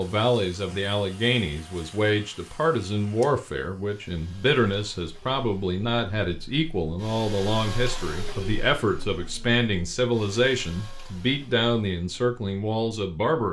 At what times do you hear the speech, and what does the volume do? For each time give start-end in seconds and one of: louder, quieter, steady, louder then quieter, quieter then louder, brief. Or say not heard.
0.0-13.4 steady.